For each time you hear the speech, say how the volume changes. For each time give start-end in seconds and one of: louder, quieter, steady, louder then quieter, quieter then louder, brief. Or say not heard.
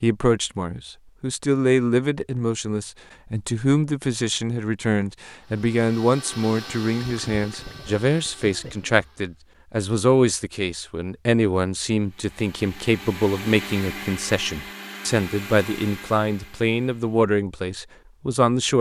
0.0-18.7 steady.